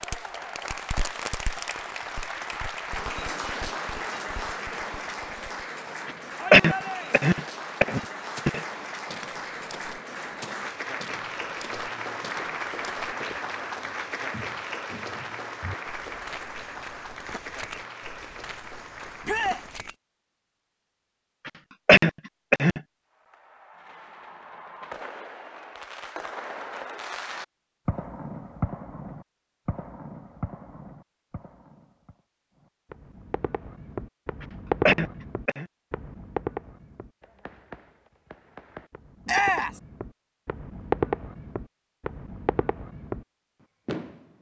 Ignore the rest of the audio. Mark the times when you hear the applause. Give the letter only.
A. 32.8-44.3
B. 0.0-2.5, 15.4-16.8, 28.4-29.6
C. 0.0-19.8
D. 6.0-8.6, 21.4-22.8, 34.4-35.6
C.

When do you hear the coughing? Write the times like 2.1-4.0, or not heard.
6.0-8.6, 21.4-22.8, 34.4-35.6.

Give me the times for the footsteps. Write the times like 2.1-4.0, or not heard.
8.3-19.9.